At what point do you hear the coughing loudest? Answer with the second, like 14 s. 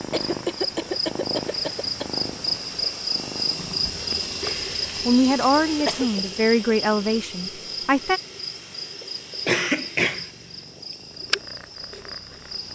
10 s.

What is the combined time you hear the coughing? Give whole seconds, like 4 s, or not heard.
3 s.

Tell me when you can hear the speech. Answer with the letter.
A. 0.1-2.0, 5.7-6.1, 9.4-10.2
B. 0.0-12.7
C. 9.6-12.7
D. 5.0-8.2
D.